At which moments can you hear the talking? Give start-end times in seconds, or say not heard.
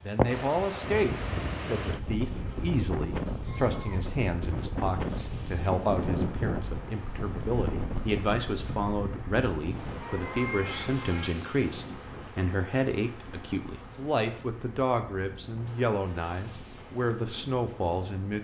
0.1-18.3.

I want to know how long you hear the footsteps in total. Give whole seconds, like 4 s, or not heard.
not heard.